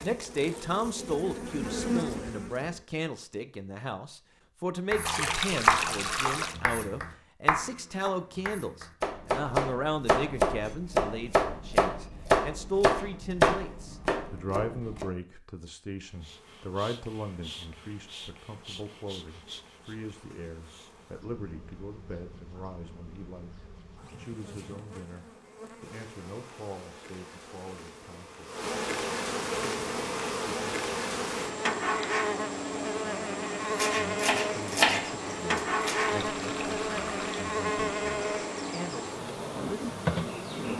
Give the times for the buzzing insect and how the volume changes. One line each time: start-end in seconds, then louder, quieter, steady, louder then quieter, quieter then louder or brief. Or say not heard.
0.0-2.9 brief
16.0-40.7 louder.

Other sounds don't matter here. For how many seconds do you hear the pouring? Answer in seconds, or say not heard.
3 s.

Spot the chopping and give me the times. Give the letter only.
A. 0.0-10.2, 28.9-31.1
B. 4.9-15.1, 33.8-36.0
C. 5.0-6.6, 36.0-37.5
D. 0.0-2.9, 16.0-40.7
B.